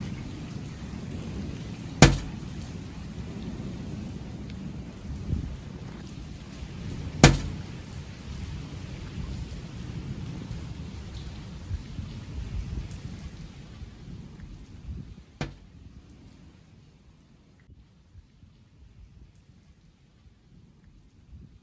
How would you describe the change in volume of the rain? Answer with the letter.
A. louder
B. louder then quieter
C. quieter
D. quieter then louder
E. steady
C.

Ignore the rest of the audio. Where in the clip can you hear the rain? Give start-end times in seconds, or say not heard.
0.0-21.5.